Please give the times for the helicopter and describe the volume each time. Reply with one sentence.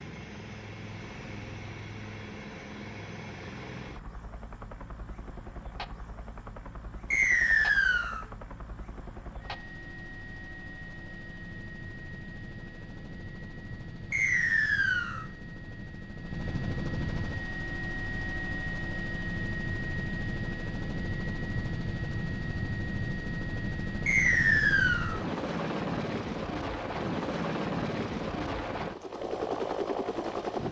You can hear the helicopter from 0.0 to 30.6 s, getting louder.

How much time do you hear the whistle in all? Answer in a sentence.
You can hear the whistle for 3 seconds altogether.